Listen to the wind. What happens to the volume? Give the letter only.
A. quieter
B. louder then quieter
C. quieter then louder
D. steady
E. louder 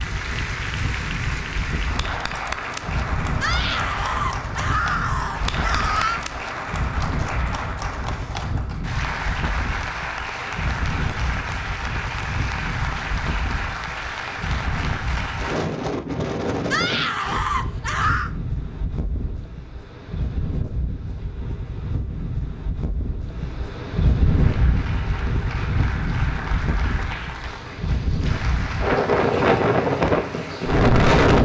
E.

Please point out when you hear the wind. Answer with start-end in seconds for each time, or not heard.
0.0-31.3.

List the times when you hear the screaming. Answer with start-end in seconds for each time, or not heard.
3.4-6.2, 16.7-18.3.